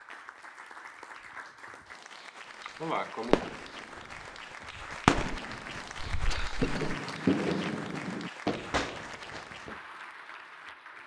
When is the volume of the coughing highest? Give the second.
3 s.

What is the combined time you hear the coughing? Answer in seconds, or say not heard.
2 s.